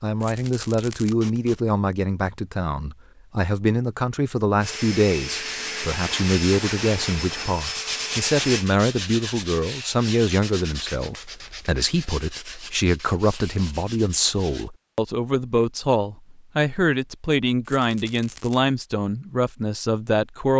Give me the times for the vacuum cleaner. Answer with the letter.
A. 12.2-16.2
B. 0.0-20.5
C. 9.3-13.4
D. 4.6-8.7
D.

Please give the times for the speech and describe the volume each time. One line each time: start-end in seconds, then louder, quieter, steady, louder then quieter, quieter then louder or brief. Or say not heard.
0.0-20.5 steady.